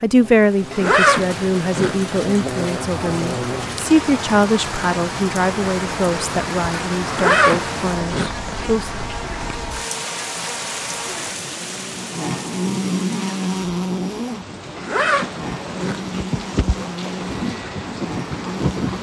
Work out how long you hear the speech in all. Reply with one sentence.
You can hear the speech for 9 seconds altogether.